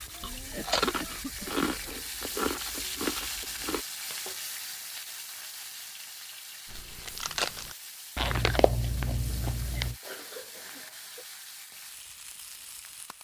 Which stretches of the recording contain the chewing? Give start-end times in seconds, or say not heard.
0.0-3.9, 6.7-9.9.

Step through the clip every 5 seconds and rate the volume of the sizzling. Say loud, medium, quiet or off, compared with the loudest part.
loud, medium, medium.